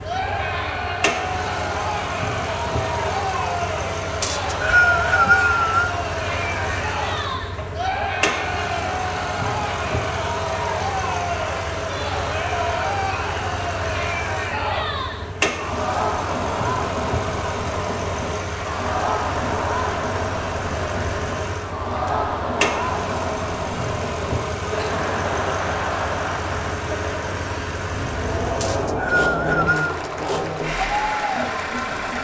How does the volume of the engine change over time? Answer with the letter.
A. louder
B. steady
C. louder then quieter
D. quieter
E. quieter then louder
B.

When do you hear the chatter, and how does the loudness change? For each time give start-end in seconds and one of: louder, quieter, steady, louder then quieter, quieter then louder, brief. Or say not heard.
0.0-32.2 steady.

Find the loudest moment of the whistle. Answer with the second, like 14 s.
5 s.